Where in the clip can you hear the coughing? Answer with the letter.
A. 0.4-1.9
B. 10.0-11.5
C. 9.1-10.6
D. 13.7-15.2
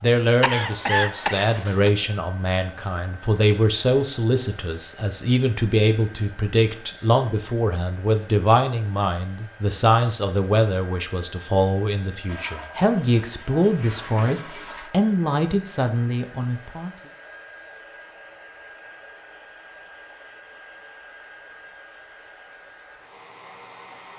A.